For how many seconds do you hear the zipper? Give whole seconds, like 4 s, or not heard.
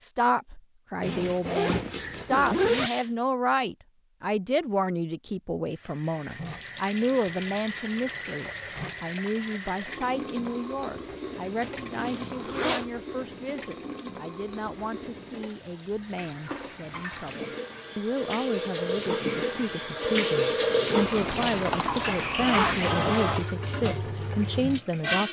4 s.